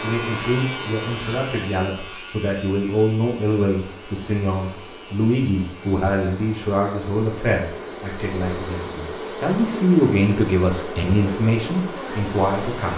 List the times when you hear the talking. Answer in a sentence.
The talking can be heard from 0.0 to 12.9 s.